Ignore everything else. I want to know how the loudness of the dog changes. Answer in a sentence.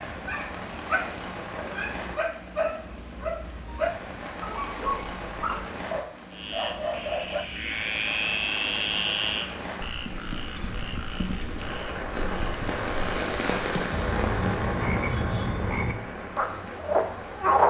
The loudness of the dog stays about the same.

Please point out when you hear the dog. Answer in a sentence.
You can hear the dog from 0.0 to 7.5 s.